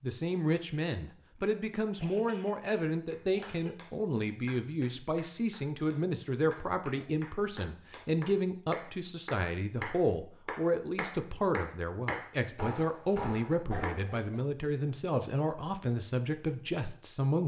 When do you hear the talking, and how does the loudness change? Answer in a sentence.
You can hear the talking from 0.0 to 17.4 s, at a steady volume.